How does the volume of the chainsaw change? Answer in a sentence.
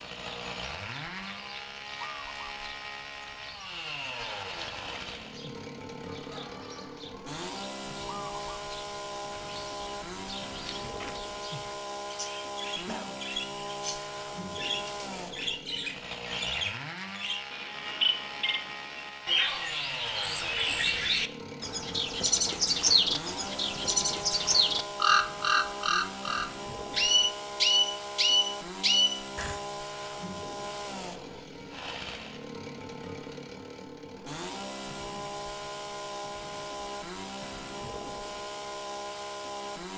The loudness of the chainsaw stays about the same.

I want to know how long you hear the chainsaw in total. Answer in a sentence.
You can hear the chainsaw for 40 seconds altogether.